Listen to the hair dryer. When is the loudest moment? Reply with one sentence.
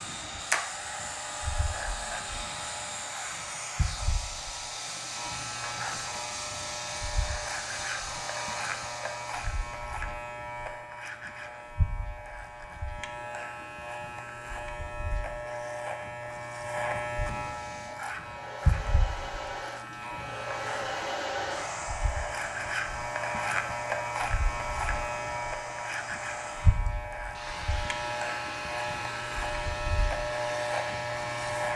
The volume of the hair dryer peaks at 21 seconds.